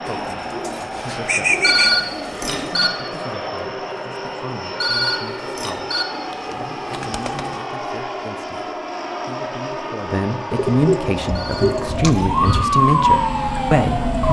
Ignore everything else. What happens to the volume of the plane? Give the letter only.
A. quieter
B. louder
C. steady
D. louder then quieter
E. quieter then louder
C.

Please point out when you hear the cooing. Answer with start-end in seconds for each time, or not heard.
0.1-2.8, 6.1-7.7, 10.5-12.7.